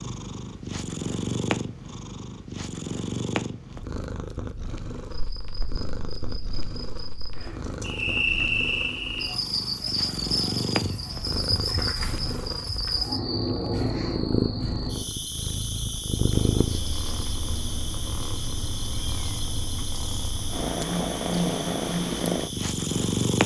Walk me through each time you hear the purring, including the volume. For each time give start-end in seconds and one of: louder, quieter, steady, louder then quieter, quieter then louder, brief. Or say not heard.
0.0-23.4 quieter then louder.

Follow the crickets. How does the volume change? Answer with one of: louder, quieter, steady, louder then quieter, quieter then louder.
quieter.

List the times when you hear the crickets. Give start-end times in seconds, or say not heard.
5.1-23.4.